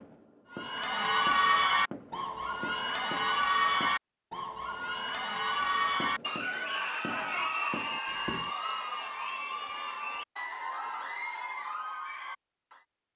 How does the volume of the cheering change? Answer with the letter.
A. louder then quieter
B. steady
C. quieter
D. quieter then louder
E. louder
C.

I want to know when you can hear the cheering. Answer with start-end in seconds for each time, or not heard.
0.5-12.8.